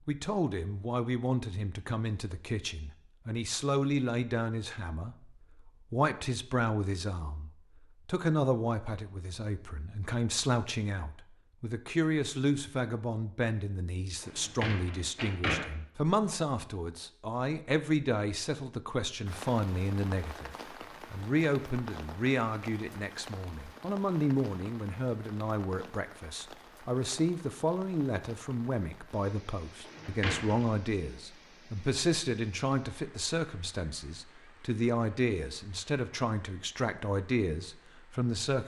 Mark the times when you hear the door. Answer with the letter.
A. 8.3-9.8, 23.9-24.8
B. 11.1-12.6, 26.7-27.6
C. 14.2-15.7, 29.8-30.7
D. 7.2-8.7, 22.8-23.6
C.